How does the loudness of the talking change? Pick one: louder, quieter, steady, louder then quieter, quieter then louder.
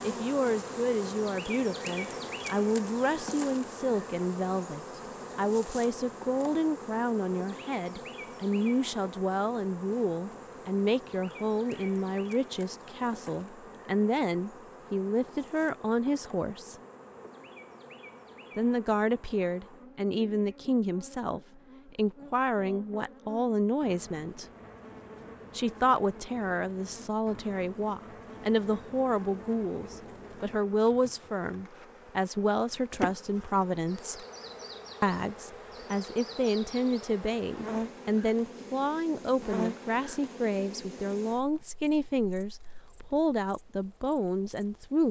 steady.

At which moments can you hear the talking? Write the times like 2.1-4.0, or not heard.
0.0-16.8, 18.6-24.4, 25.6-34.2, 35.0-45.0.